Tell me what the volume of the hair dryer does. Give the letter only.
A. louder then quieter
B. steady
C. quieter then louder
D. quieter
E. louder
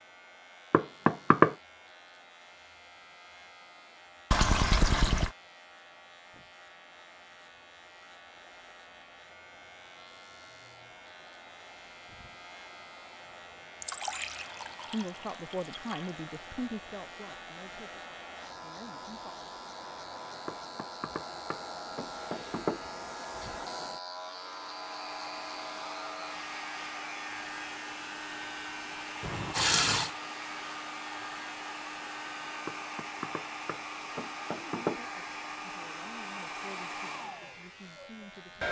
E.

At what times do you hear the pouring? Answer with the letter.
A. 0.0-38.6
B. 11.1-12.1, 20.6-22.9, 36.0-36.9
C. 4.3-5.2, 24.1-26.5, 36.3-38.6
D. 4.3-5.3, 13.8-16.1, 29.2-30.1
D.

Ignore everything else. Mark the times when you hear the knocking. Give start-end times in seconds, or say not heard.
0.7-1.6, 20.4-22.9, 32.6-35.0.